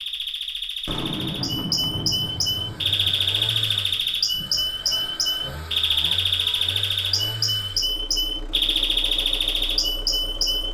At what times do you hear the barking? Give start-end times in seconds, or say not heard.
not heard.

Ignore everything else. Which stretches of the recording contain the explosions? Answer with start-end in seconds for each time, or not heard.
0.8-4.1.